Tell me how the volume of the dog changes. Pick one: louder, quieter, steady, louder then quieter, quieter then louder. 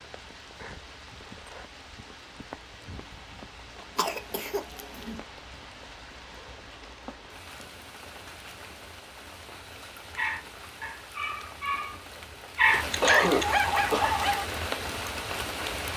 louder.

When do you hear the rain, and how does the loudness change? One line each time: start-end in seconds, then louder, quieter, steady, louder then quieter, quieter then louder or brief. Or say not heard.
0.0-15.9 louder.